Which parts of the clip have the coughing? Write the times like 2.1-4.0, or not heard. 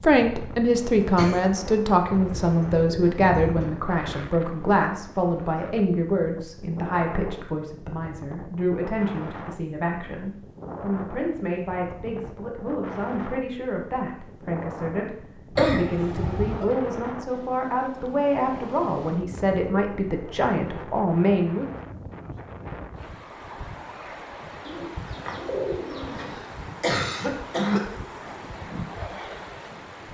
0.8-1.5, 15.6-16.8, 26.1-27.9.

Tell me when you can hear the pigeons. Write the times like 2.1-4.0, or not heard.
2.0-3.8, 24.6-26.4.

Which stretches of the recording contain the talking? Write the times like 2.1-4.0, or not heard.
0.0-21.8.